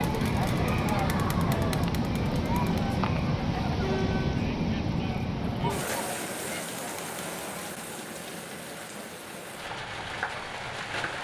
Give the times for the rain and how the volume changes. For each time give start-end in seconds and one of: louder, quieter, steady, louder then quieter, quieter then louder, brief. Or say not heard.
0.0-11.1 quieter.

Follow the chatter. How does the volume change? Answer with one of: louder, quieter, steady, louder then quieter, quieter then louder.
quieter.